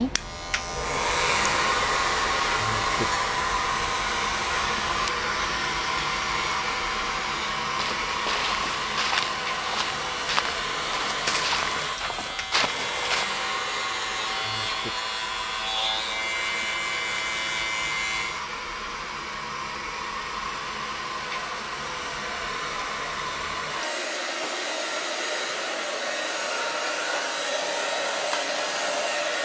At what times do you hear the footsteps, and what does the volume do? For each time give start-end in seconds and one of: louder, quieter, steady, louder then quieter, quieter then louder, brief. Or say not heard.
7.8-13.2 steady.